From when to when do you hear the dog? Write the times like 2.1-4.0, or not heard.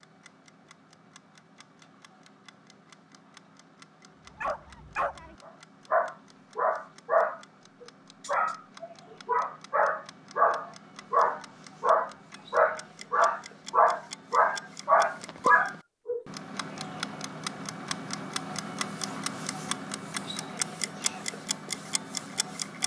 4.4-16.2.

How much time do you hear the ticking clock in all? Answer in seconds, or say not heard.
23 s.